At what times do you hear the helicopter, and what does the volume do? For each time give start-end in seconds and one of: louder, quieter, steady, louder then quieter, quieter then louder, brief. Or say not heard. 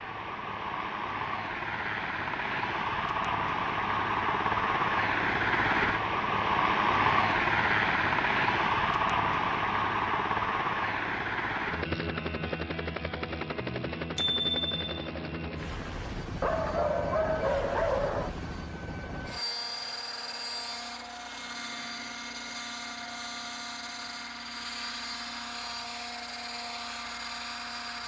0.0-28.0 quieter.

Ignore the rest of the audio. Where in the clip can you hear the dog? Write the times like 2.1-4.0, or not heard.
16.4-18.4.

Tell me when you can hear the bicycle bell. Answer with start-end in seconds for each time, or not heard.
14.2-15.1.